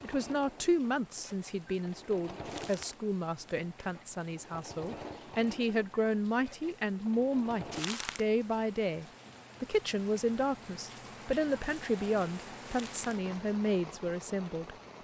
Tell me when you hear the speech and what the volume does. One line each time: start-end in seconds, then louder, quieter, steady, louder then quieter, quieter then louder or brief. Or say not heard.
0.0-15.0 steady.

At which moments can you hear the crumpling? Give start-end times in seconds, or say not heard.
2.5-3.0, 7.7-8.2, 12.7-13.1.